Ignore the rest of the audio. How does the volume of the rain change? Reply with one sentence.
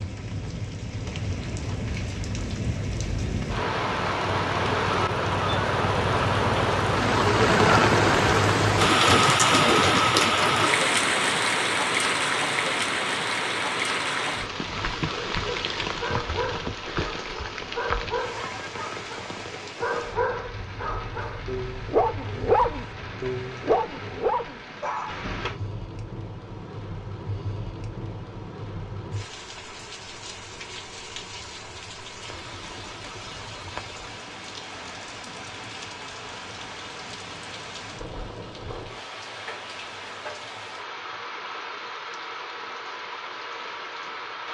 The loudness of the rain goes down.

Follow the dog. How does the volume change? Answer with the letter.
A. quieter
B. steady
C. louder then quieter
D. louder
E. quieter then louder
D.